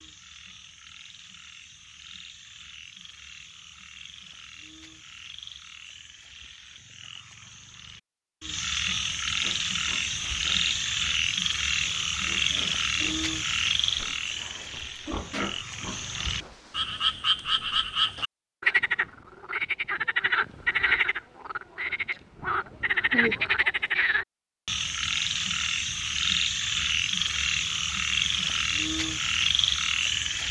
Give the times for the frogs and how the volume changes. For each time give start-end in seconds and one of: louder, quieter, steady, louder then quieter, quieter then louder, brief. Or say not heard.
0.0-30.4 louder.